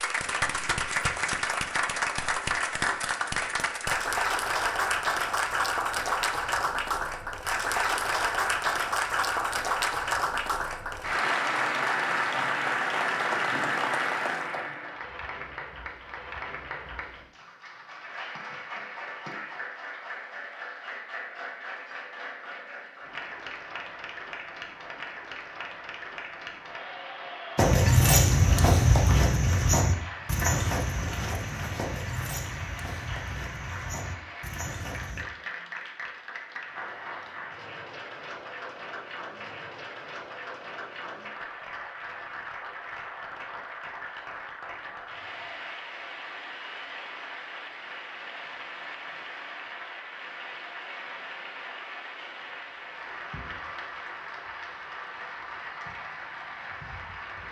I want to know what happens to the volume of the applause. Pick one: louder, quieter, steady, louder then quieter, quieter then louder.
quieter.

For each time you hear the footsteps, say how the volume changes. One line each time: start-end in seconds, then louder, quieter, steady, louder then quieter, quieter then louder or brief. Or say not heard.
27.6-35.2 quieter.